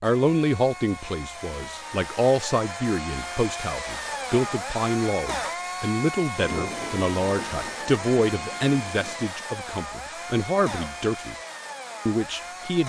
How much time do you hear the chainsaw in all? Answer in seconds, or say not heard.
13 s.